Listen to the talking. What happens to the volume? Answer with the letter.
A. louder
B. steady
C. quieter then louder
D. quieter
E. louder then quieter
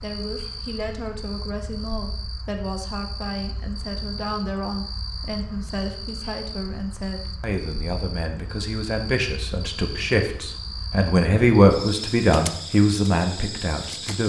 A.